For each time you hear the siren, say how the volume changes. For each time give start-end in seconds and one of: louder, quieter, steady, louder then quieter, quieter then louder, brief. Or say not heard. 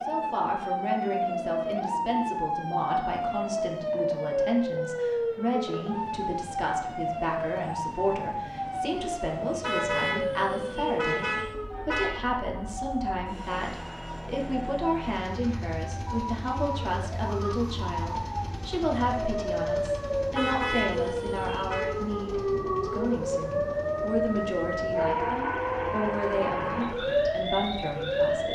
0.0-28.4 quieter then louder.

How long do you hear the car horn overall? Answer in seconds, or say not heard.
4 s.